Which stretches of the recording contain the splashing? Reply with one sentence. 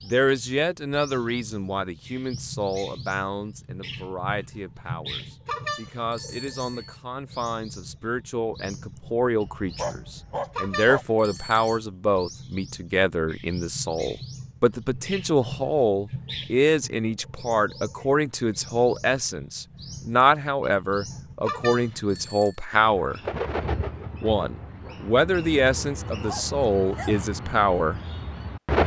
The splashing can't be heard in this clip.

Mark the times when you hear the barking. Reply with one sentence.
You can hear the barking from 9.4 to 11.1 s and from 26.1 to 27.2 s.